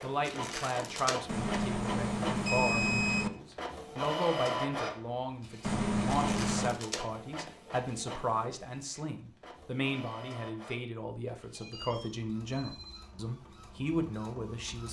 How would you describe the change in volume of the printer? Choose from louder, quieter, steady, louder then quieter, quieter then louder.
quieter.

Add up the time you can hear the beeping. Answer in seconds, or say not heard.
5 s.